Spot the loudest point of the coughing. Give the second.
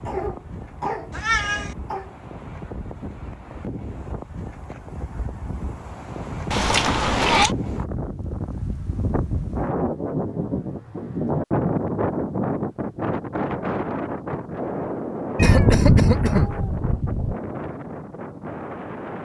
16 s.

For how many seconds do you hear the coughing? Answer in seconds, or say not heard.
3 s.